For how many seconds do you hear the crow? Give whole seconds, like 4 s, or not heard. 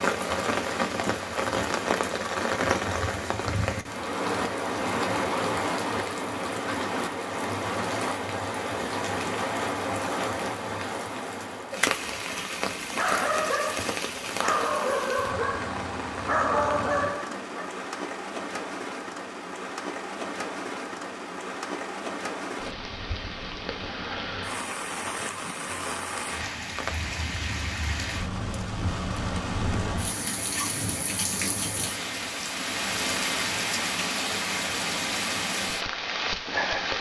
not heard.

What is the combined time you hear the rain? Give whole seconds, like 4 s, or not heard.
37 s.